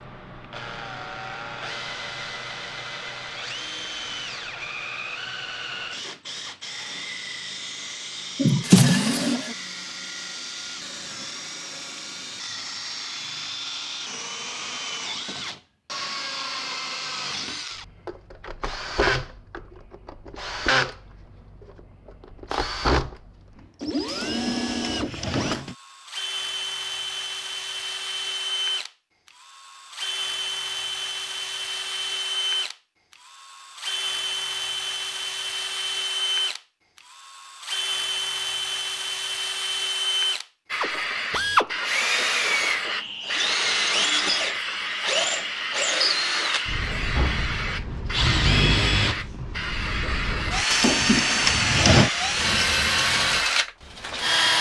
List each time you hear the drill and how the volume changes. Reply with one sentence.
The drill can be heard from 0.0 to 54.5 s, getting louder.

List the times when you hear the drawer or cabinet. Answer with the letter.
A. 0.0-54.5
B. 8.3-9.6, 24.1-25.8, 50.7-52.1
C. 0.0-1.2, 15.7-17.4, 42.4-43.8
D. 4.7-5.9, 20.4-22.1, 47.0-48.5
B.